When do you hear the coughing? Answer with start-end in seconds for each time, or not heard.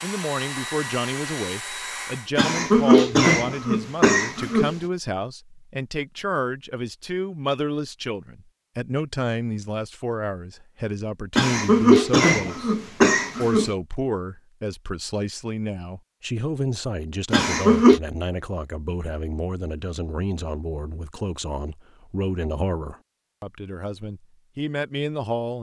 2.4-4.8, 11.3-13.7, 17.3-18.0.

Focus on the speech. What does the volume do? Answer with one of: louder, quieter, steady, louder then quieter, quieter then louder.
steady.